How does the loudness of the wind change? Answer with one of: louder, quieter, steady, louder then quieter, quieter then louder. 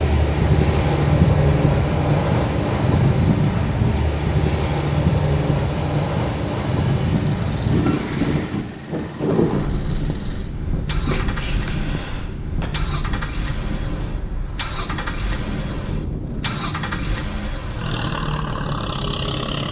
quieter.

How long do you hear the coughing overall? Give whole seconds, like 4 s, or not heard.
2 s.